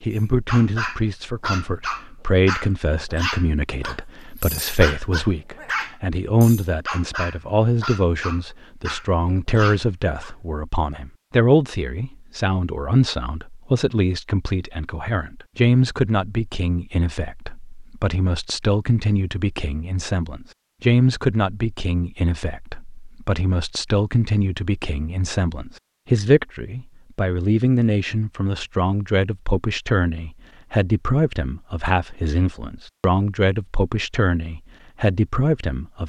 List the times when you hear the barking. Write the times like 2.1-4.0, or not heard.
0.5-10.3.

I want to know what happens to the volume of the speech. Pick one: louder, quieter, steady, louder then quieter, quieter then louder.
steady.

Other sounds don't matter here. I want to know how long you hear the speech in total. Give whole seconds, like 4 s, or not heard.
36 s.